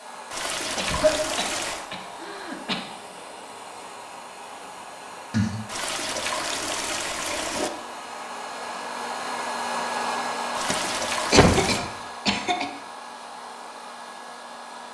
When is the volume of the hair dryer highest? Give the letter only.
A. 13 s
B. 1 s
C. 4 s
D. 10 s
D.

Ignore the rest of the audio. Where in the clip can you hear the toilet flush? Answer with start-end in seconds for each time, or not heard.
0.3-1.9, 5.7-7.7, 10.6-11.8.